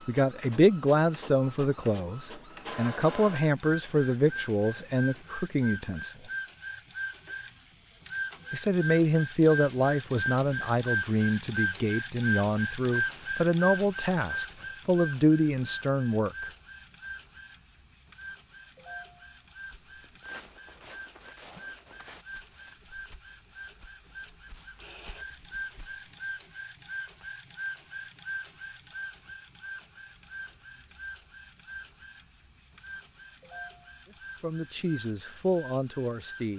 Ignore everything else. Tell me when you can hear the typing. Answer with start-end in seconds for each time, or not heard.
not heard.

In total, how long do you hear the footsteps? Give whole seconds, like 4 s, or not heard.
7 s.